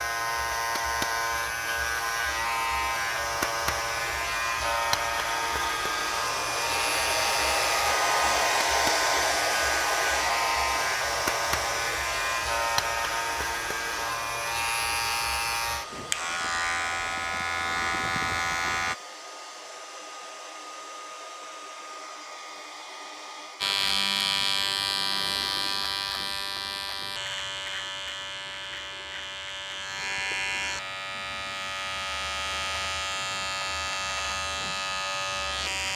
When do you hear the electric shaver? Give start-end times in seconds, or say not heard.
0.0-18.9, 23.6-35.9.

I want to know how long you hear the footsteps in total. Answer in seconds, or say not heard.
not heard.